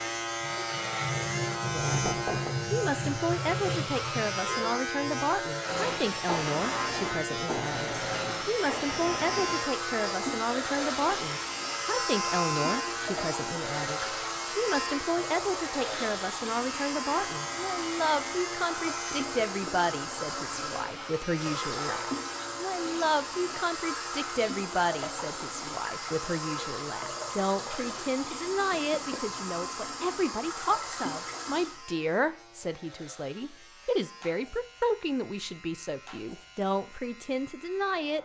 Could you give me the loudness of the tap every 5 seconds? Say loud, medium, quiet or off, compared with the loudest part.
loud, loud, loud, loud, loud, loud, loud, off.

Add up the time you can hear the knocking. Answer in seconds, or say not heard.
2 s.